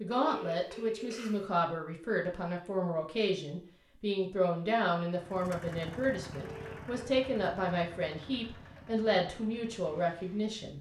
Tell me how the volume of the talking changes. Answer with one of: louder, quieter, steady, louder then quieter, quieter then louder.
steady.